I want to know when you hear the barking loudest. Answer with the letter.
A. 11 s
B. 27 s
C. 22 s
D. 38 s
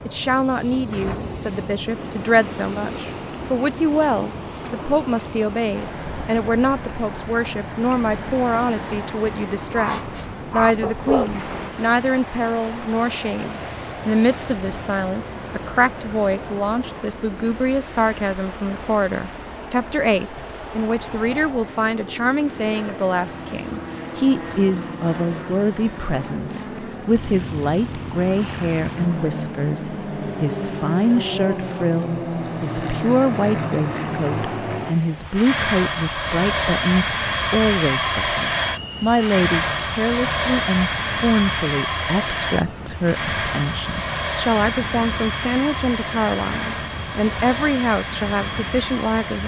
A.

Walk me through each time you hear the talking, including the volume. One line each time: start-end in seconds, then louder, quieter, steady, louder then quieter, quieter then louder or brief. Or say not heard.
0.1-49.4 steady.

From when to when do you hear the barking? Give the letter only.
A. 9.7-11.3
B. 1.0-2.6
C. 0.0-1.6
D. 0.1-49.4
A.